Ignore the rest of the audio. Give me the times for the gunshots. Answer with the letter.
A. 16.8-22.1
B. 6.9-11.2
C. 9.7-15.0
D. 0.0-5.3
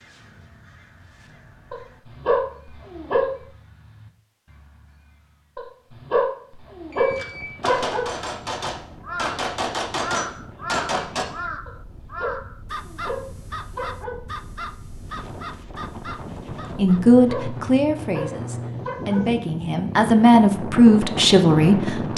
B.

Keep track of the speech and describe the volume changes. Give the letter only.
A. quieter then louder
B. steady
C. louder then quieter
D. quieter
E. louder
A.